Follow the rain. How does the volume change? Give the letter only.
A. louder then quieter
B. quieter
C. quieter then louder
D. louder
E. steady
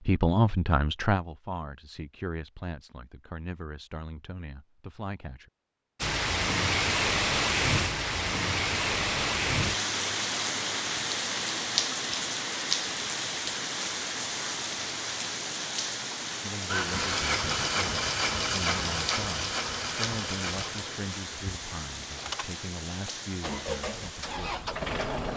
B.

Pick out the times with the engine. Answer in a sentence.
You can hear the engine from 16.6 to 25.3 s.